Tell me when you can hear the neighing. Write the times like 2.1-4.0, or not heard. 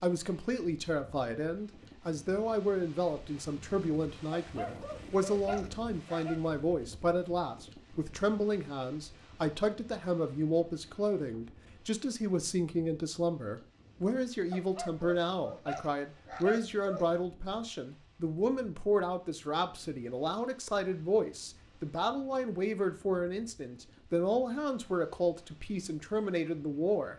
not heard.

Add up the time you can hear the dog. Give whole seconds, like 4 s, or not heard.
5 s.